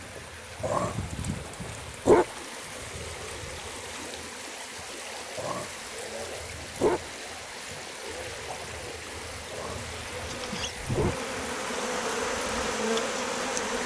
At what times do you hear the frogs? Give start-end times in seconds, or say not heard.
not heard.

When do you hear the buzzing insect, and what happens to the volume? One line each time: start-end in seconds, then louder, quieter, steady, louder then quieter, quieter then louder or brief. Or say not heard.
0.0-13.8 louder.